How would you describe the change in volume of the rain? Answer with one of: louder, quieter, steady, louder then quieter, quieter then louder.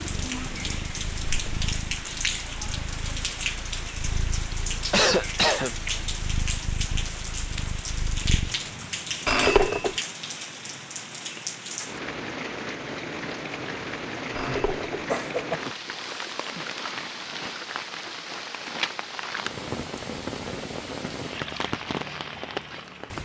steady.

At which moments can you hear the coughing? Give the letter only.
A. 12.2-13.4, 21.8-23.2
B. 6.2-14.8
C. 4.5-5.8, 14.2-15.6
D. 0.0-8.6
C.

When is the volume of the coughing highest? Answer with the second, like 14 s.
5 s.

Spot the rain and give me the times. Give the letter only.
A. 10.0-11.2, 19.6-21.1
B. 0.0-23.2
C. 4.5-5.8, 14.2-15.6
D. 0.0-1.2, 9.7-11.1
B.